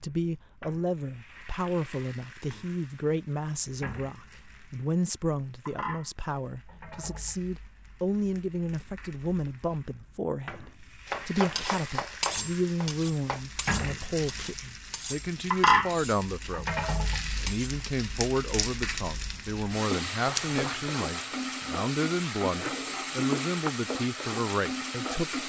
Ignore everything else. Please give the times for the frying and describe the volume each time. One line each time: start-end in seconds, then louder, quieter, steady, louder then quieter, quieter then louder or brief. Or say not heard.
0.0-25.4 louder.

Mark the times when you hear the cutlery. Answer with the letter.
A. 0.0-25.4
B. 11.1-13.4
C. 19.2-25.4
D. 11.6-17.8
D.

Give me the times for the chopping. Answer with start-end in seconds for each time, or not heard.
11.1-13.4.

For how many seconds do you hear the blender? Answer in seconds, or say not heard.
not heard.